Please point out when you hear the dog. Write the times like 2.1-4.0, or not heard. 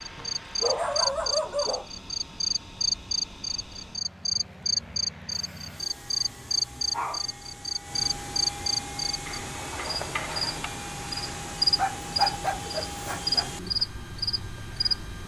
0.1-1.9, 5.3-7.2, 11.8-13.5.